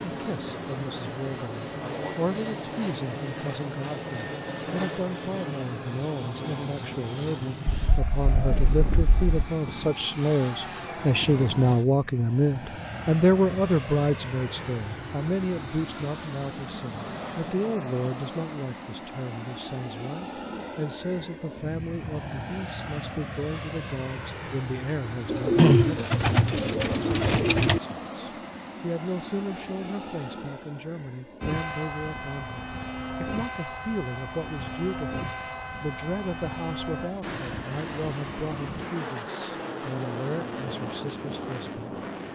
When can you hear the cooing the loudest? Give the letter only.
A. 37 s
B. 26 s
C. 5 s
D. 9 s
B.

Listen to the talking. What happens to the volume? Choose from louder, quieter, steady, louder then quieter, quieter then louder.
louder then quieter.